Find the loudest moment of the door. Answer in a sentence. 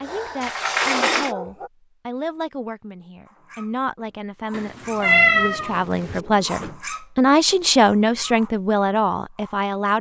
The volume of the door peaks at 1 second.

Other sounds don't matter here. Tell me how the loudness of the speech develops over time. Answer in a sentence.
The loudness of the speech goes up.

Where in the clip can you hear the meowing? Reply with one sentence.
You can hear the meowing from 4.5 to 6.2 s.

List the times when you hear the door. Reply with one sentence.
The door can be heard from 0.4 to 1.4 s and from 5.3 to 6.8 s.